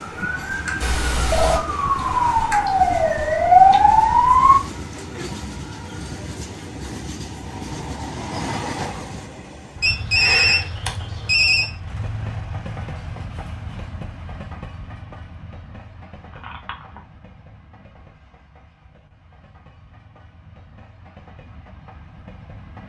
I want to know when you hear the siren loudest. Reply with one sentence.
The loudest moment of the siren is at 4 seconds.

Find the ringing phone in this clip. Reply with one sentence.
The ringing phone can be heard from 0.8 to 1.6 s, from 9.8 to 11.7 s and from 16.3 to 17.0 s.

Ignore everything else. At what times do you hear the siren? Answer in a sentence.
The siren can be heard from 0.0 to 4.6 s.